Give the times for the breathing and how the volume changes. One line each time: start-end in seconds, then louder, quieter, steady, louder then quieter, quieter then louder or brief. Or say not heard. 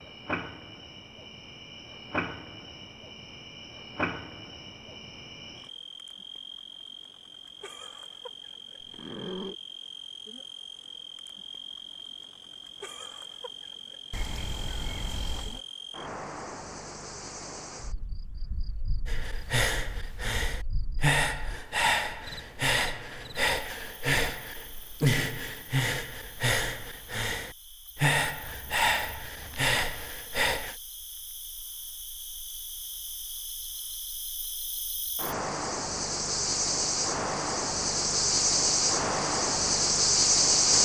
19.1-30.8 steady.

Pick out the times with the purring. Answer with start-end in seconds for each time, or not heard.
not heard.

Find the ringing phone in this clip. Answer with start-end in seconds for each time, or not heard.
not heard.